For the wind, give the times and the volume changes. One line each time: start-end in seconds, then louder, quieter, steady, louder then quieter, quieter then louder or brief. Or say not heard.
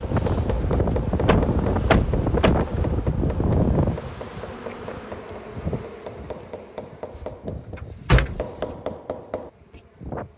0.0-10.3 quieter.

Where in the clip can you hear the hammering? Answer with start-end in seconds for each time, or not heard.
0.0-9.8.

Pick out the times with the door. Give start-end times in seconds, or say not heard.
1.2-2.5, 7.2-8.8.